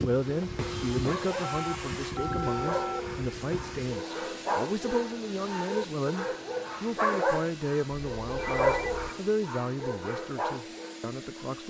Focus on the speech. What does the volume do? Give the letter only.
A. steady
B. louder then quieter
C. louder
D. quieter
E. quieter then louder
A.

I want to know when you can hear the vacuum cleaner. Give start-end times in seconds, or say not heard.
0.0-11.6.